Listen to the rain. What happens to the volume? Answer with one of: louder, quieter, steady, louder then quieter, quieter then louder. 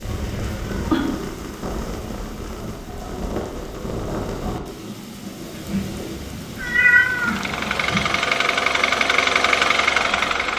quieter.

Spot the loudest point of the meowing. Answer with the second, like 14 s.
7 s.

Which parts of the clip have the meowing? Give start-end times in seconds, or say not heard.
0.0-1.0, 5.5-8.1.